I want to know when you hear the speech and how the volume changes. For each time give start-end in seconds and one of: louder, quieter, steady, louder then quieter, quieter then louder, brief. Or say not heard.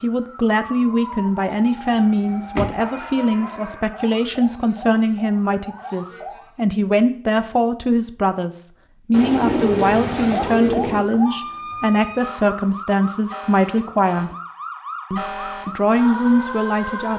0.0-14.3 steady
15.1-17.1 brief.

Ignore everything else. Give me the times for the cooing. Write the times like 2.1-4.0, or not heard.
9.1-11.1.